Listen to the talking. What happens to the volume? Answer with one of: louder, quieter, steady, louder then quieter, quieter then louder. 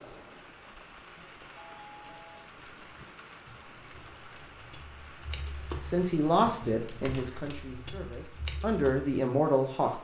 quieter then louder.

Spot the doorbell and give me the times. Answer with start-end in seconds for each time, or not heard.
1.6-2.5.